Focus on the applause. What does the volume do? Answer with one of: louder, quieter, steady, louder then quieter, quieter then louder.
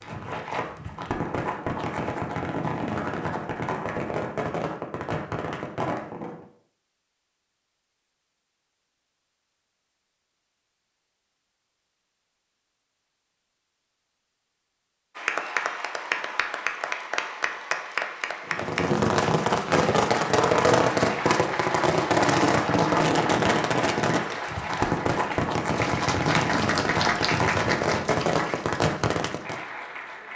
steady.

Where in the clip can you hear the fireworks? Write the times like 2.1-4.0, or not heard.
0.0-6.5, 18.4-29.6.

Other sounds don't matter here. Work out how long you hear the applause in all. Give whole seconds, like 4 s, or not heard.
15 s.